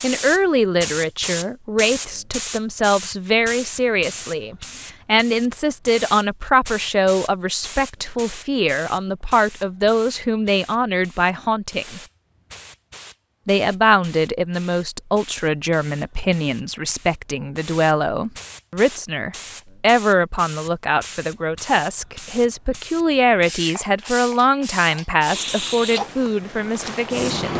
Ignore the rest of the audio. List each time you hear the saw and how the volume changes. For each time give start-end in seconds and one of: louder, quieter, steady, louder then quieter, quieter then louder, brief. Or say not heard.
not heard.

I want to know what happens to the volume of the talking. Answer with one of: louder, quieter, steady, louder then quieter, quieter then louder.
steady.